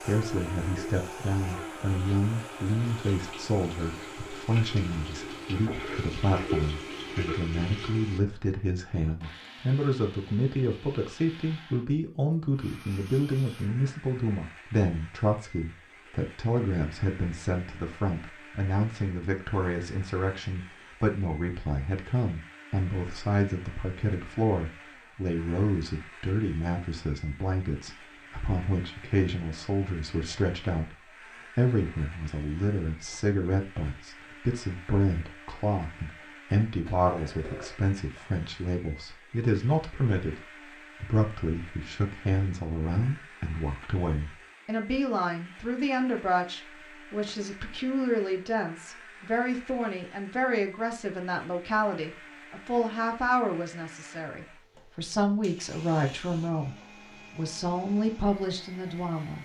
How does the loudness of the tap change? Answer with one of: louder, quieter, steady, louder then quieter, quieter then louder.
louder.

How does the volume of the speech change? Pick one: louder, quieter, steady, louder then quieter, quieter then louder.
steady.